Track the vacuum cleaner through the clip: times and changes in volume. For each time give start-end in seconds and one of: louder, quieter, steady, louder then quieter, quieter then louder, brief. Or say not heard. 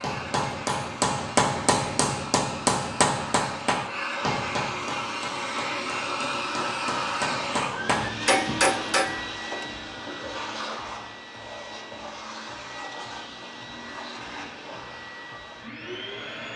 0.0-16.5 louder then quieter.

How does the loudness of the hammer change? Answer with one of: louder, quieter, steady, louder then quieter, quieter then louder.
quieter then louder.